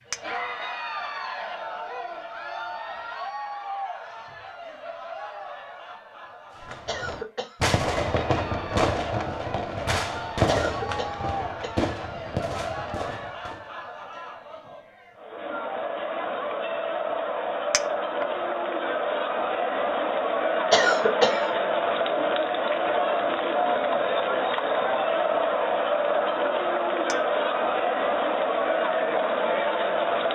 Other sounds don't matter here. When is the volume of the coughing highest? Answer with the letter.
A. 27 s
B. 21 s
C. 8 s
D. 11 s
B.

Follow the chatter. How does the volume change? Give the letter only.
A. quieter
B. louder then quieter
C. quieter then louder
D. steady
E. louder
E.